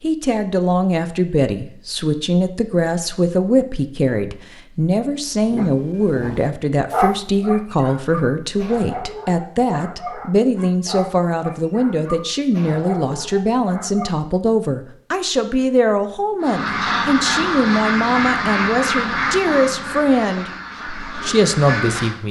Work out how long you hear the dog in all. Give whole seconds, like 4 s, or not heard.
9 s.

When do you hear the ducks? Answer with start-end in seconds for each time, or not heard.
16.4-22.2.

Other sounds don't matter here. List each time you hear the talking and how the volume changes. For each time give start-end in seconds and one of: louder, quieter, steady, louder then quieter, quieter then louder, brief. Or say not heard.
0.0-22.2 steady.